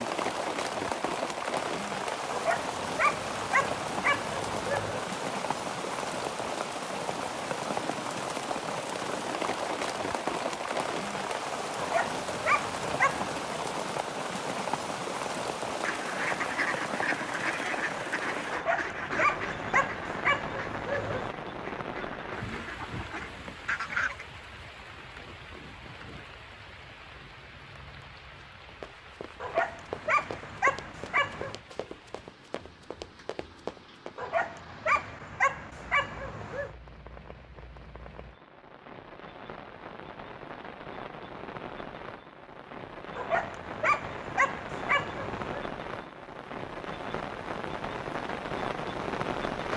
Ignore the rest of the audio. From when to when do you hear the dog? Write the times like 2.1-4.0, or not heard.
2.3-5.0, 11.8-13.3, 18.5-21.3, 29.4-31.6, 34.1-36.7, 43.1-45.6.